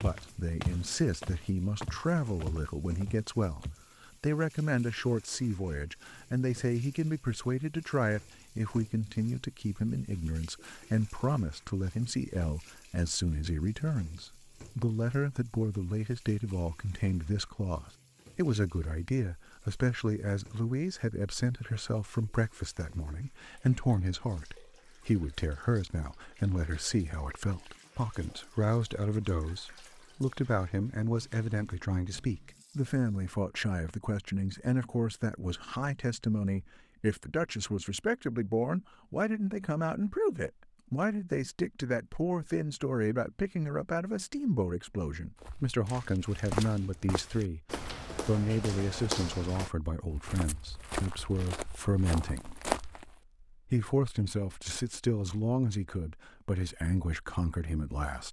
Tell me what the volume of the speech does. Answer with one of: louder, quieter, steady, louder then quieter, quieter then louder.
steady.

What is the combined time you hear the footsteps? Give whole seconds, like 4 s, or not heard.
12 s.